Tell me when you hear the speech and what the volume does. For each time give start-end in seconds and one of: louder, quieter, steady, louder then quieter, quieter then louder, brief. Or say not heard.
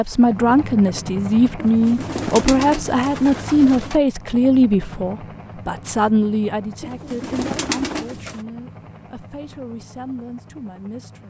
0.0-11.2 quieter.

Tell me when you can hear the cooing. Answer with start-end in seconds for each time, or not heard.
1.6-4.0, 6.8-8.4.